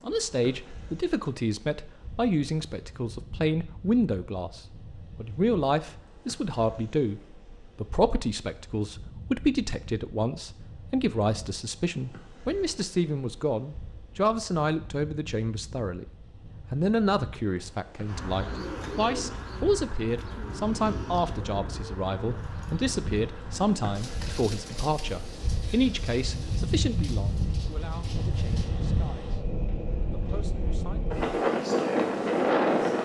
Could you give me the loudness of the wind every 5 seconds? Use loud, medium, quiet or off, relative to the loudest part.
quiet, quiet, quiet, quiet, quiet, medium, loud.